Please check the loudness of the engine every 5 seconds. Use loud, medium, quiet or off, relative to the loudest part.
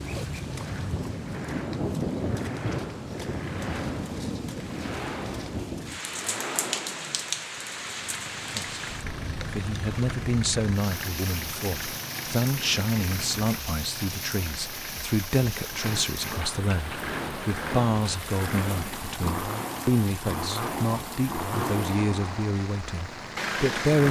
medium, medium, medium, loud, loud.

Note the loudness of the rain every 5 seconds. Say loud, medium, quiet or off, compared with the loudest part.
loud, loud, medium, medium, medium.